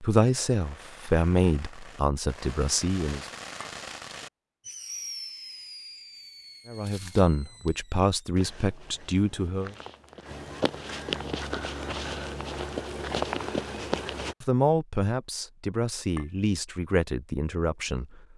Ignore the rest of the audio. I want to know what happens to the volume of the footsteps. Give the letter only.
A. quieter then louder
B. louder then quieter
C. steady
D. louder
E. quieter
D.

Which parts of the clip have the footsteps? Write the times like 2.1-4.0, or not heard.
6.7-14.3.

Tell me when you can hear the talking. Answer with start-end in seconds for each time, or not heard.
0.0-3.2, 6.7-9.8, 14.4-18.2.